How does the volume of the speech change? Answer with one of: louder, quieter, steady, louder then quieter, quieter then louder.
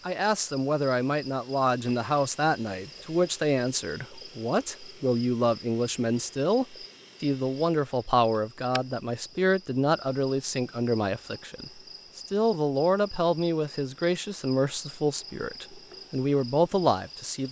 steady.